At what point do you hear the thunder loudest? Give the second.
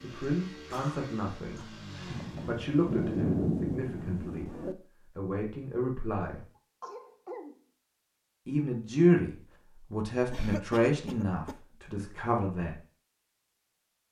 3 s.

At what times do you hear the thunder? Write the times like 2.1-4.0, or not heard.
2.0-4.8.